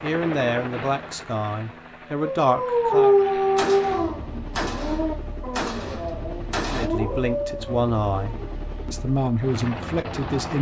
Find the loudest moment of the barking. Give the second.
3 s.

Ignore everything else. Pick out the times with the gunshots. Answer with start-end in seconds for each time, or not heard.
3.5-6.8.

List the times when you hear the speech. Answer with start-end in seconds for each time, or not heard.
0.0-3.1, 6.7-10.5.